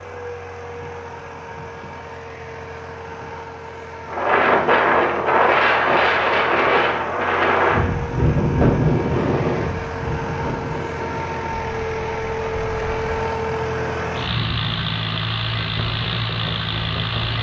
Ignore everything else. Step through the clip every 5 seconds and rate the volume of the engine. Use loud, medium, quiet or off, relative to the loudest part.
medium, medium, loud, loud.